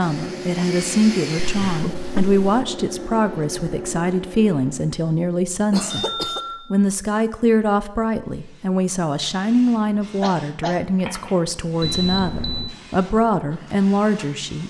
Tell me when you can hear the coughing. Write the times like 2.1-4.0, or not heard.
1.6-2.3, 5.7-6.4, 10.2-10.8.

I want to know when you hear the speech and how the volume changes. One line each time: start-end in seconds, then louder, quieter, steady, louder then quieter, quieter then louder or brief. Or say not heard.
0.0-14.6 steady.